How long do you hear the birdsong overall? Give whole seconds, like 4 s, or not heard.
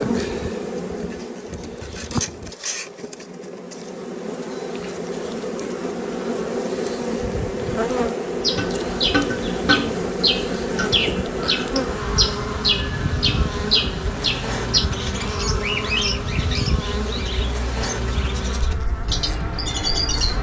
12 s.